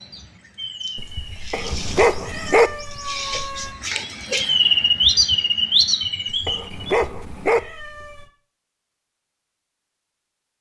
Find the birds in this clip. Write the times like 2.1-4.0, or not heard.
0.0-7.0.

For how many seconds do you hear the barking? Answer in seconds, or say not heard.
2 s.